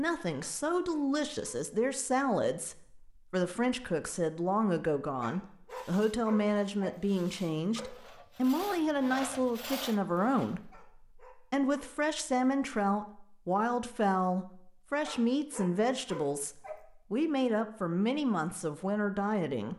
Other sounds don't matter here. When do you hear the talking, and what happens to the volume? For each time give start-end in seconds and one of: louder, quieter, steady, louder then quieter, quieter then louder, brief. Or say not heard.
0.0-19.7 steady.